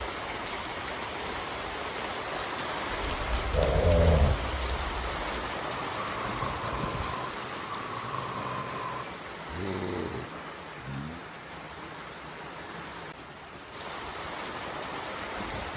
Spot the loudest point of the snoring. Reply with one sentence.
The volume of the snoring peaks at 4 seconds.